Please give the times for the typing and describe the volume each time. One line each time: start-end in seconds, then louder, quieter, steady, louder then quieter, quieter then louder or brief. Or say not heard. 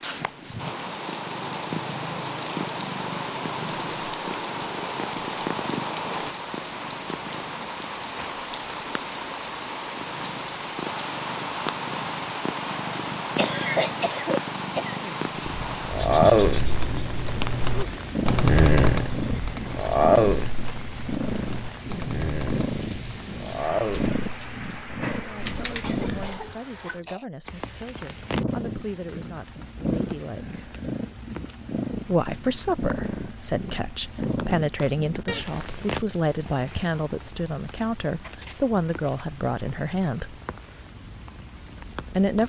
15.4-26.5 quieter.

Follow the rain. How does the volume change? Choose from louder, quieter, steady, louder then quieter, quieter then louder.
quieter.